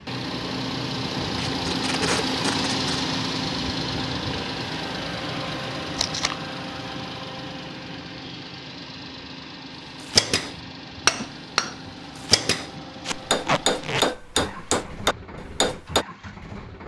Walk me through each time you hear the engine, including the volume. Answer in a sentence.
You can hear the engine from 0.0 to 16.8 s, getting quieter.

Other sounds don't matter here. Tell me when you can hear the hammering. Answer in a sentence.
You can hear the hammering from 10.0 to 16.1 s.